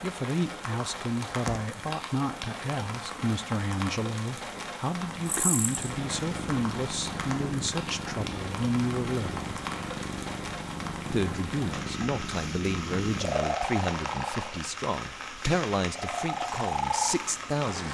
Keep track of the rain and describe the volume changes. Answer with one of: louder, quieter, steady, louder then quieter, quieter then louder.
steady.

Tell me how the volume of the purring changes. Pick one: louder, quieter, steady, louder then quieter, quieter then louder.
louder.